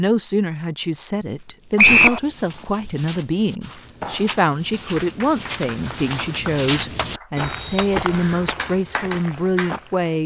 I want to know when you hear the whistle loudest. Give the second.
2 s.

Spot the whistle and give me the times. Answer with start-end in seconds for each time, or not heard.
1.8-2.2, 7.3-8.4.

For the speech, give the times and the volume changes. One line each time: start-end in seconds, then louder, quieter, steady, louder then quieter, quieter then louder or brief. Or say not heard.
0.0-10.2 steady.